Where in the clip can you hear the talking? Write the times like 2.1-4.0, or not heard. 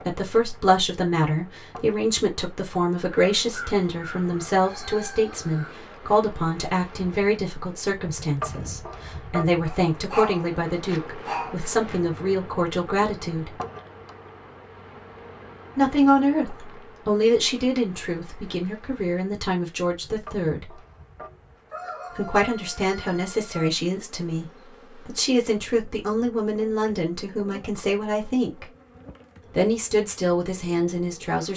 0.1-13.6, 15.8-20.8, 22.1-28.6, 29.5-31.5.